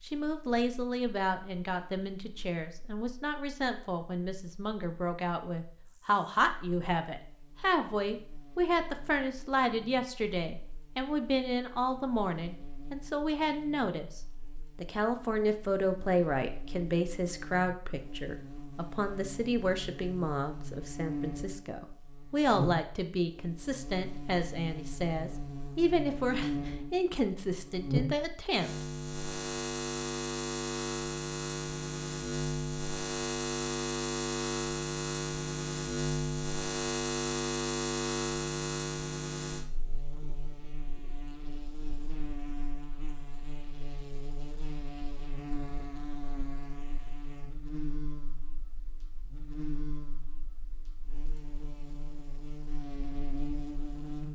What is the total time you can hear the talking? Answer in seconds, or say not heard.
29 s.